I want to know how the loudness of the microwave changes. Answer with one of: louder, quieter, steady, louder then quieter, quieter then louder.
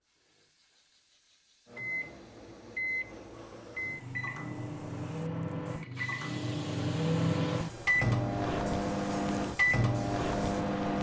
louder.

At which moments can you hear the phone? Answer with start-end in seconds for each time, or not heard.
not heard.